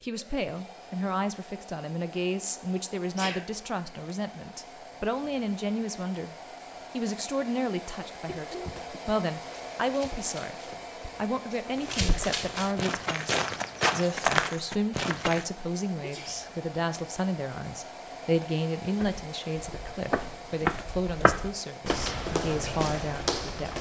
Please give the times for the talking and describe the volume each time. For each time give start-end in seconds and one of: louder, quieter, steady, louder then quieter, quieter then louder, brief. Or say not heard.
0.0-10.6 steady
11.2-23.7 steady.